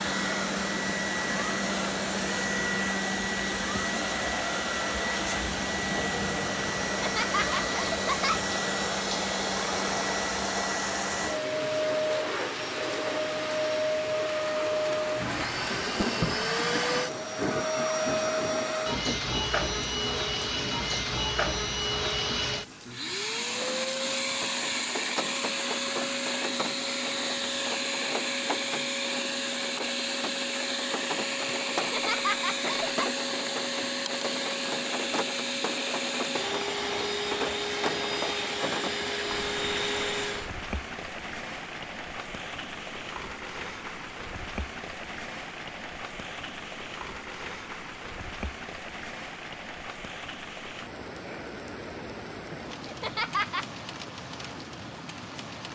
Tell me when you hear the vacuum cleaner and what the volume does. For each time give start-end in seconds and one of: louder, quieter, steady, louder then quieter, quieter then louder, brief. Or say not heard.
0.0-40.5 steady.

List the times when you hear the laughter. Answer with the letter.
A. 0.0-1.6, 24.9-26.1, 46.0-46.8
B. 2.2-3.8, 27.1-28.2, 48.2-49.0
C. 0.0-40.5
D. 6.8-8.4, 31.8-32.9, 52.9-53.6
D.